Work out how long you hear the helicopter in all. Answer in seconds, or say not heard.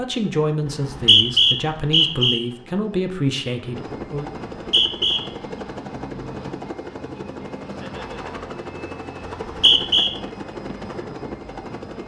12 s.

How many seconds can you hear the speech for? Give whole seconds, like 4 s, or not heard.
4 s.